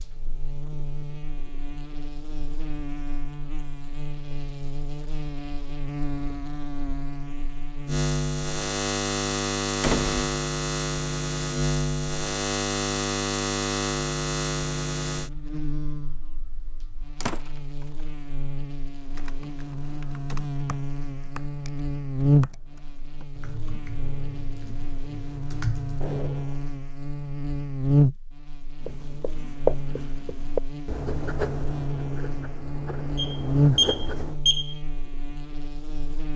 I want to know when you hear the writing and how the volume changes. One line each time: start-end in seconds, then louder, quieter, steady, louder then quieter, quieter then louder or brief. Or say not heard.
28.8-34.4 quieter then louder.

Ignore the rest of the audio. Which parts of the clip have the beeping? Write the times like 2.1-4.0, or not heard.
33.1-34.8.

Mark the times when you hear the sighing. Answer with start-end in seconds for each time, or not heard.
not heard.